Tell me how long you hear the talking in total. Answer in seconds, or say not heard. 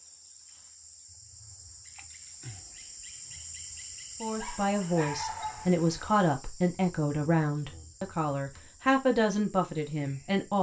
6 s.